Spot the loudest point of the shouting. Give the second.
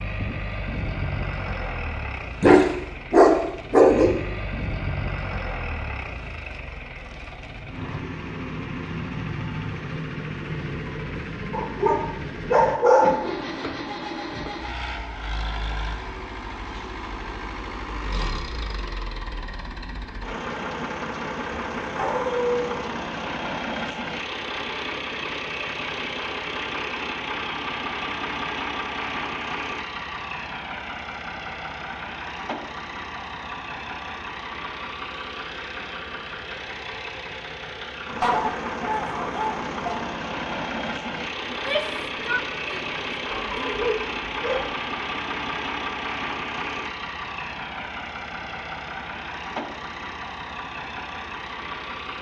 42 s.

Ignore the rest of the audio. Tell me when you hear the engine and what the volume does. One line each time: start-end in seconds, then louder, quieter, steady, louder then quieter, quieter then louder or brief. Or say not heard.
0.0-52.1 steady.